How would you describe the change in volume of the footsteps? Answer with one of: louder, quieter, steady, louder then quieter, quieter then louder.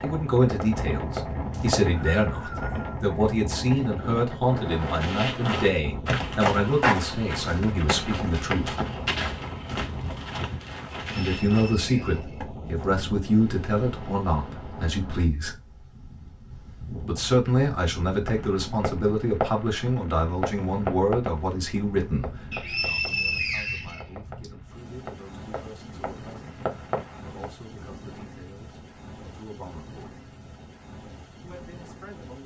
quieter.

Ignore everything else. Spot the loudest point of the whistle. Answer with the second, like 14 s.
23 s.